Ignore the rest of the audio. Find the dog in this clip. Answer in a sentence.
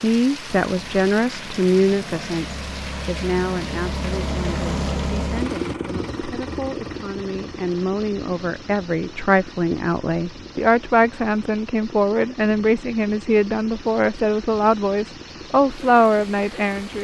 The dog can't be heard in this clip.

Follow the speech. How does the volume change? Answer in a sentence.
The loudness of the speech goes down, then up.